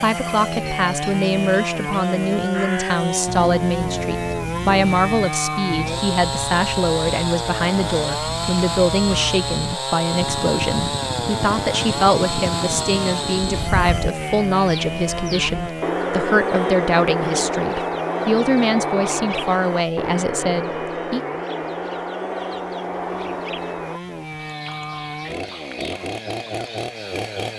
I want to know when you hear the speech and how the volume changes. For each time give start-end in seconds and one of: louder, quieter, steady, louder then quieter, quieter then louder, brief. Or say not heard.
0.0-21.2 steady.